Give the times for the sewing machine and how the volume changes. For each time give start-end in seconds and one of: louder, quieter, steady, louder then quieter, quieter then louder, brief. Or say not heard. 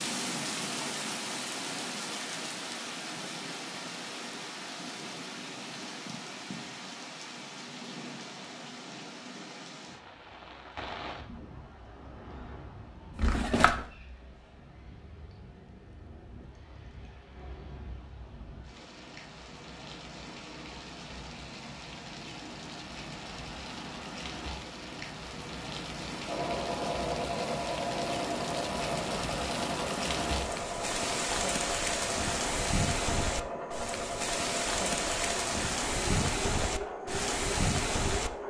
26.2-38.4 steady.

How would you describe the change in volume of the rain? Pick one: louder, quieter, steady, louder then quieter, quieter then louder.
quieter then louder.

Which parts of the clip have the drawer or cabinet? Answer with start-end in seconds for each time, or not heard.
13.2-13.8.